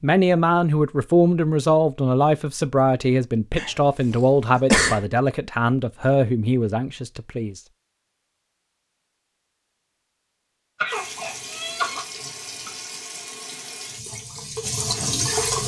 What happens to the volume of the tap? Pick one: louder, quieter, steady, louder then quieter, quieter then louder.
louder.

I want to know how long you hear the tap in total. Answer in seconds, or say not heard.
5 s.